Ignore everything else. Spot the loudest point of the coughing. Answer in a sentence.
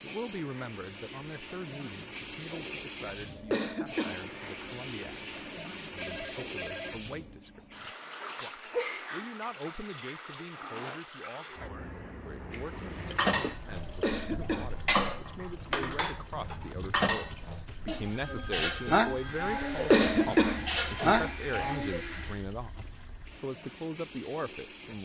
The loudest moment of the coughing is at 20 seconds.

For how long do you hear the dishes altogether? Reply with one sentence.
You can hear the dishes for 9 seconds altogether.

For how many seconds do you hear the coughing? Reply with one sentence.
You can hear the coughing for 4 seconds altogether.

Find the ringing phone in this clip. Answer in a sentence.
The ringing phone can be heard from 6.0 to 7.0 s and from 18.1 to 19.4 s.